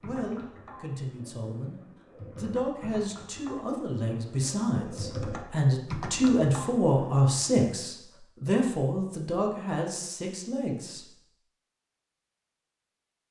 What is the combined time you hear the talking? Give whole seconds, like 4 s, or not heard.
11 s.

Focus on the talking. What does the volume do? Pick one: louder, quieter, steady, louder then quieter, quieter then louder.
louder then quieter.